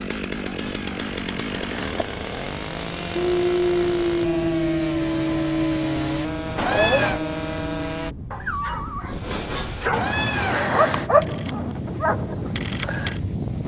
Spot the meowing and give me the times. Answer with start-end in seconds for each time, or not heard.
0.3-2.0, 6.5-7.2, 9.9-11.1.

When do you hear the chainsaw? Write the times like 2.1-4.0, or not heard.
0.0-8.2.